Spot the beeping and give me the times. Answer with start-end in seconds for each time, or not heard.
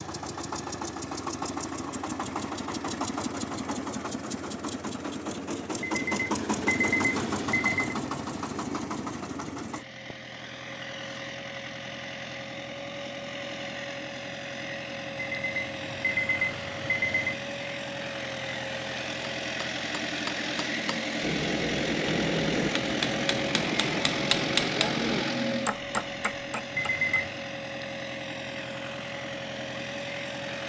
5.8-8.0, 15.3-17.4, 26.8-27.4.